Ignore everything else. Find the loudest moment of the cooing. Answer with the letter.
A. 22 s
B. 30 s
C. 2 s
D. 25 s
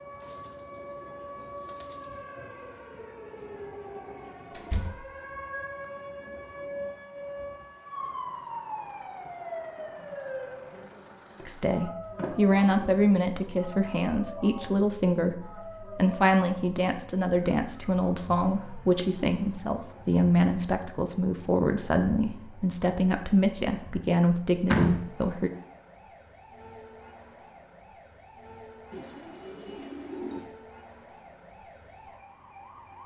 B.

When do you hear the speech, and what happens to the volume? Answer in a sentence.
You can hear the speech from 11.4 to 25.5 s, at a steady volume.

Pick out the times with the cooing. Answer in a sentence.
The cooing can be heard from 0.2 to 3.0 s and from 28.9 to 30.5 s.